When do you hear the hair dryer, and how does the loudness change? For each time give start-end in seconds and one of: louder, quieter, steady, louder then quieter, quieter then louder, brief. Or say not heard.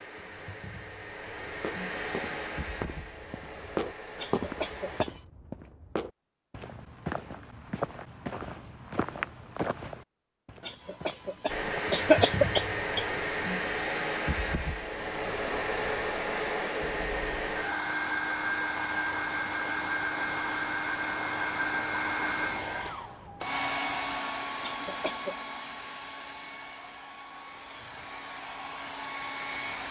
0.0-5.0 louder then quieter
11.4-29.8 quieter.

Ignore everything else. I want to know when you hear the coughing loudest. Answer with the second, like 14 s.
12 s.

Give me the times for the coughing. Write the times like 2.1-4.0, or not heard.
4.2-5.2, 10.7-13.1, 24.6-25.4.